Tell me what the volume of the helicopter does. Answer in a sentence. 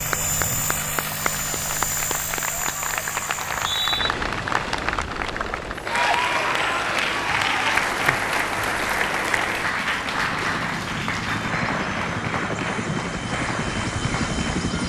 The volume of the helicopter goes down, then up.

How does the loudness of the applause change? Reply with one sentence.
The volume of the applause goes up, then down.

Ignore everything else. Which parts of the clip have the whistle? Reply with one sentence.
The whistle can be heard from 3.4 to 4.1 s.